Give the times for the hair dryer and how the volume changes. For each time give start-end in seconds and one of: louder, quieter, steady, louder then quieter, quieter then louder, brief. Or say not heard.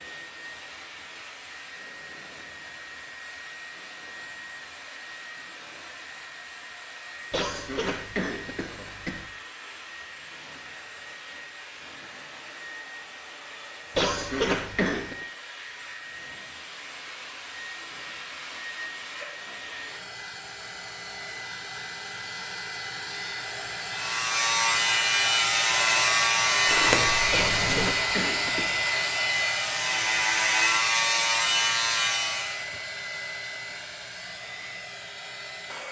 0.0-35.8 louder.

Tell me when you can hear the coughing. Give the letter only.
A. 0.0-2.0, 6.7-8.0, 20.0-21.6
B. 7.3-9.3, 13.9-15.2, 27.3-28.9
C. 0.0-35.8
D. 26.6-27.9
B.